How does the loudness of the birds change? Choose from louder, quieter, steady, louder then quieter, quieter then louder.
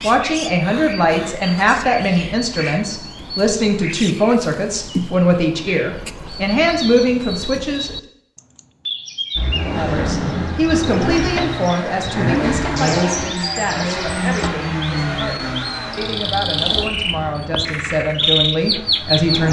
louder.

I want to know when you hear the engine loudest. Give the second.
13 s.